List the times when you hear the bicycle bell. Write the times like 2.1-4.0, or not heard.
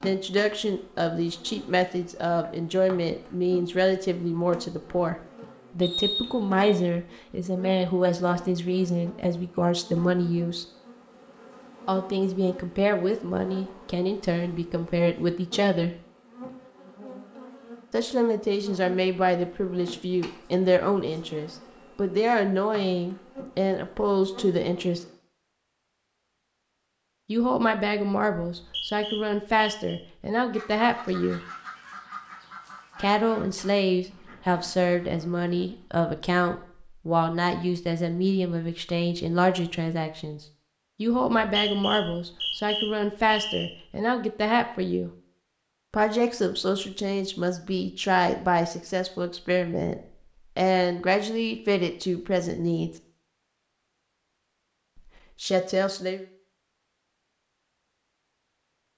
not heard.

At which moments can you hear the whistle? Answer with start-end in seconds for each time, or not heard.
5.8-6.6, 28.4-29.9, 41.4-43.7.